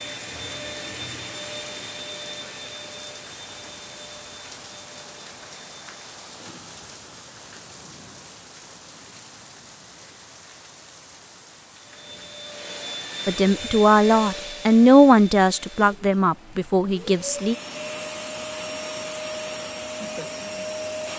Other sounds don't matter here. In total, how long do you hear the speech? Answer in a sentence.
The speech can be heard for 4 seconds in total.